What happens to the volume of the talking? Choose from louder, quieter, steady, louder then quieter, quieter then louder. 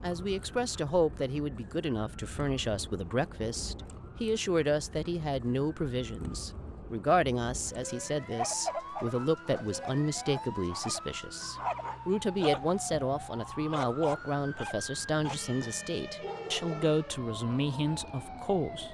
steady.